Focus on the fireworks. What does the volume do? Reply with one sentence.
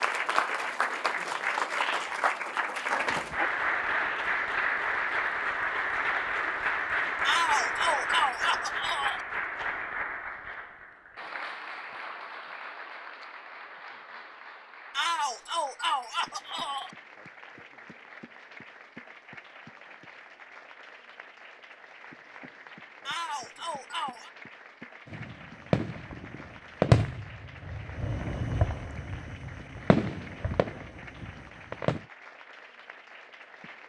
The loudness of the fireworks goes up, then down.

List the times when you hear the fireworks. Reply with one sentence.
You can hear the fireworks from 25.1 to 32.0 s.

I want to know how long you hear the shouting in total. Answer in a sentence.
The shouting can be heard for 5 seconds in total.